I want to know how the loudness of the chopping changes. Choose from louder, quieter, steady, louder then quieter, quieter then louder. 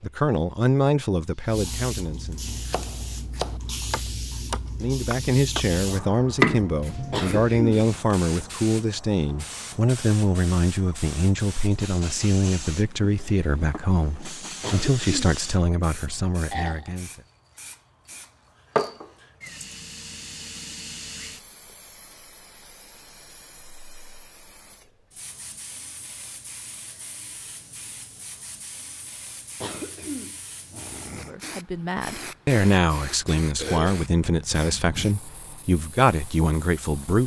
louder.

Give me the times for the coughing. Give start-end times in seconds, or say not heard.
7.1-7.8, 14.6-15.4, 29.6-31.4.